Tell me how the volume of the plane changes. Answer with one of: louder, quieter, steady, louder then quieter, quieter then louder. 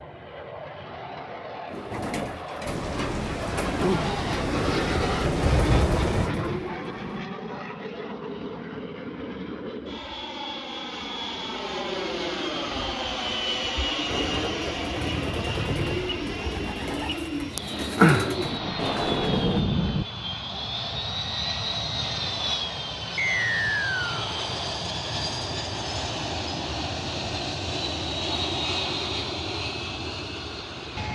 steady.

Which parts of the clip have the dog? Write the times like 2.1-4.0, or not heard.
not heard.